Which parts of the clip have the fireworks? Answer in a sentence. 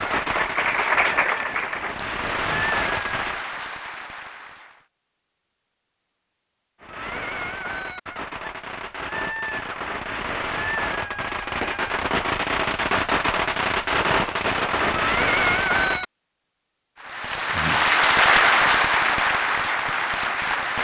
The fireworks can be heard from 0.0 to 3.5 s and from 6.8 to 16.1 s.